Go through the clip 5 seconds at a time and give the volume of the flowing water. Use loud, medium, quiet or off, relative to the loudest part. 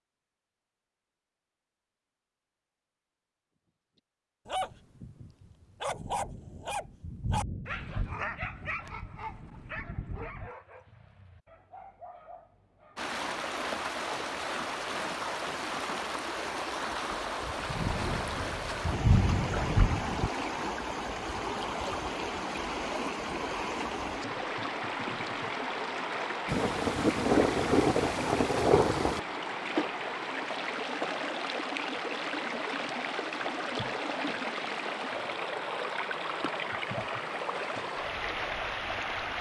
off, off, loud, loud, loud, loud, loud, loud.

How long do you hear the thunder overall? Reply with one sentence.
The thunder can be heard for 10 seconds in total.